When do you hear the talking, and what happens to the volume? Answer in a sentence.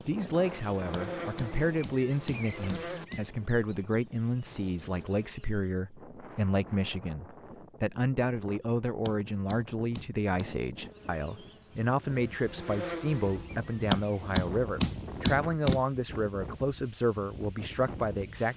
You can hear the talking from 0.1 to 18.5 s, at a steady volume.